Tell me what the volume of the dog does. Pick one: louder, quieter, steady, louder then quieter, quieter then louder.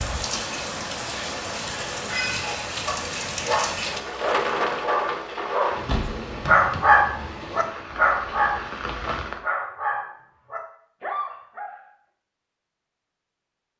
louder then quieter.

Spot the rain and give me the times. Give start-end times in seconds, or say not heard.
0.0-9.4.